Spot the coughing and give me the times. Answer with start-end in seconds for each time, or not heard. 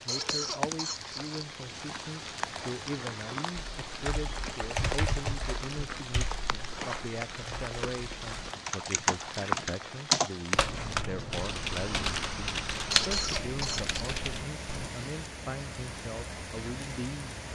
0.1-1.5, 12.9-13.9.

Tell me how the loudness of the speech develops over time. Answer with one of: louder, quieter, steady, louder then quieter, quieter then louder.
steady.